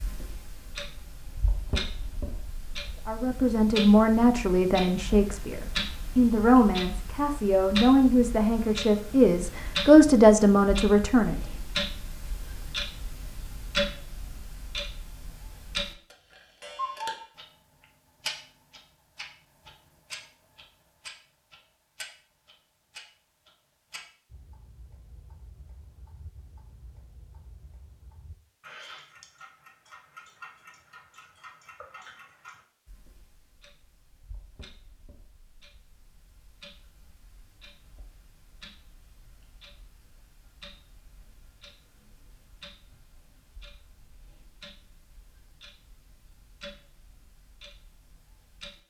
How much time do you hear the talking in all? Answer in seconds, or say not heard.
8 s.